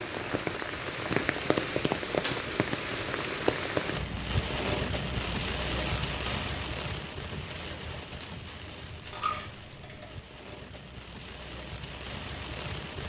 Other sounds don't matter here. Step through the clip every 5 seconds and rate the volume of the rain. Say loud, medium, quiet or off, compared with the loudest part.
loud, medium, medium.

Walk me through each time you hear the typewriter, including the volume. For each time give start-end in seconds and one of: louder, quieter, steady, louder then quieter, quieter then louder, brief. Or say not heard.
not heard.